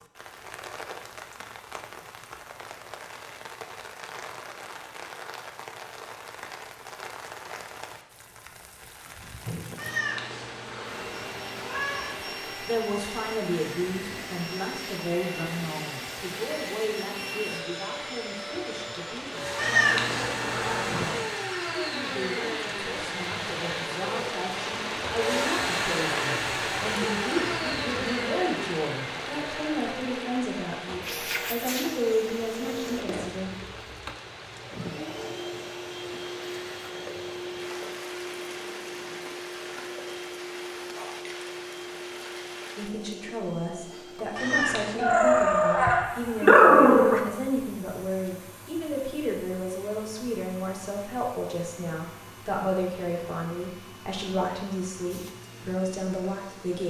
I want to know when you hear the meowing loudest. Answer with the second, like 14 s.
20 s.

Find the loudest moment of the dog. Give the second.
47 s.